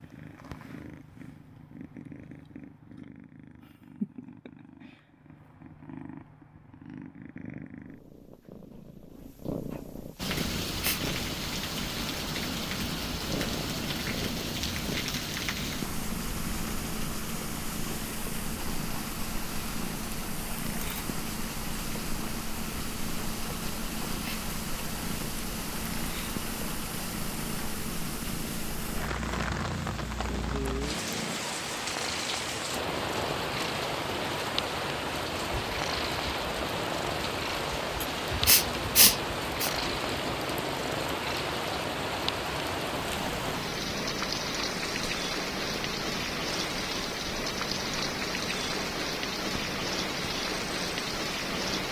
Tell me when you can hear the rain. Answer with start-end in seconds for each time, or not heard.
10.2-51.8.